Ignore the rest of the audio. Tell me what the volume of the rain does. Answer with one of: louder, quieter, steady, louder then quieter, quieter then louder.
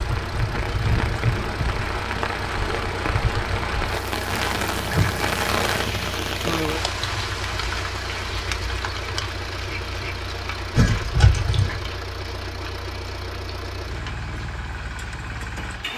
quieter.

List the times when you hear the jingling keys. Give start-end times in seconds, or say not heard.
4.3-6.1, 10.8-11.8.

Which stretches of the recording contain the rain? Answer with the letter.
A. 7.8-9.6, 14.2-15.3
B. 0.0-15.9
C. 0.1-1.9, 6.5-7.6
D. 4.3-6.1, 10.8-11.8
B.